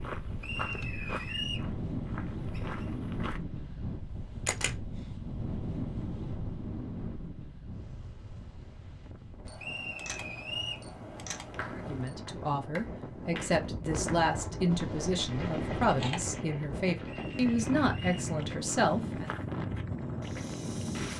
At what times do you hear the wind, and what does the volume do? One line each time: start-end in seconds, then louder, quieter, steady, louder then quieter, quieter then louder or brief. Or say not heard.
0.0-21.1 quieter then louder.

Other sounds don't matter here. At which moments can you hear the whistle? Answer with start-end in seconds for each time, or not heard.
0.4-1.7, 9.6-10.8, 17.1-18.2.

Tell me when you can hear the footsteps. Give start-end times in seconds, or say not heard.
0.0-3.4, 18.6-21.1.